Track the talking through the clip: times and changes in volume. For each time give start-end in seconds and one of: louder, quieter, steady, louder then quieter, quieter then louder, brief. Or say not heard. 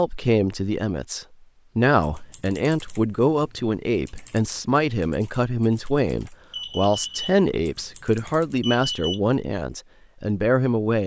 0.0-11.0 steady.